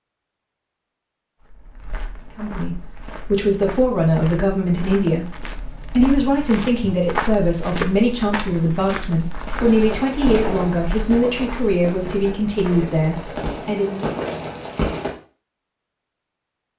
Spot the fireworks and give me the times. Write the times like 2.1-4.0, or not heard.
9.6-15.2.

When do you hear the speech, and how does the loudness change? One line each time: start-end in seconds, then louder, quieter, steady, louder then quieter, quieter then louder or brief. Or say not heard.
2.4-14.1 steady.